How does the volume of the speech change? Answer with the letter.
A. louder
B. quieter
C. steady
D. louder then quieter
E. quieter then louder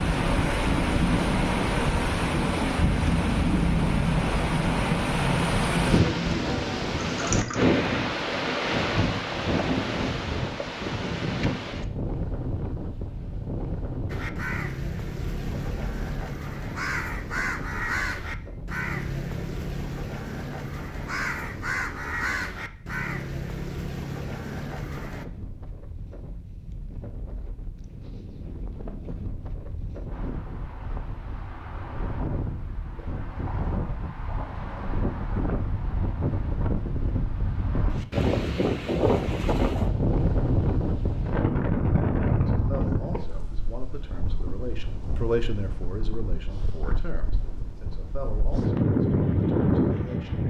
D.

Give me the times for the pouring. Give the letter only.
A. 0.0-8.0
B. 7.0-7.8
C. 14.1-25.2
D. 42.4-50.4
B.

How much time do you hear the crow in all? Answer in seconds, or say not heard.
11 s.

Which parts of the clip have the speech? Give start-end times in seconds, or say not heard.
42.4-50.4.